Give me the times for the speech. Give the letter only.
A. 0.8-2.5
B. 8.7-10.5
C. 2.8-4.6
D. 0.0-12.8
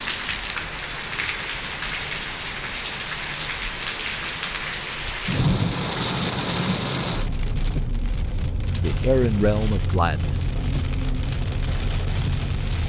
B.